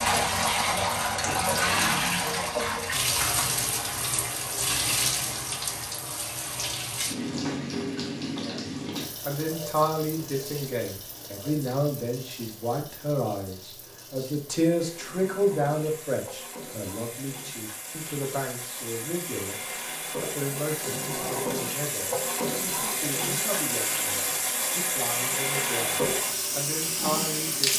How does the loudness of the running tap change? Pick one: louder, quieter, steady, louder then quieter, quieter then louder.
quieter then louder.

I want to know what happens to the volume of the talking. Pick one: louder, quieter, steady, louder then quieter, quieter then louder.
quieter.